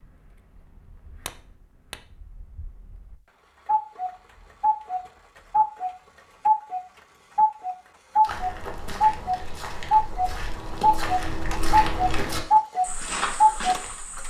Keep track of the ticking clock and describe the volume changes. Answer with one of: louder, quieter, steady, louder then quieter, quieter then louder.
louder.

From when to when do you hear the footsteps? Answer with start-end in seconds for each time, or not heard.
8.2-14.2.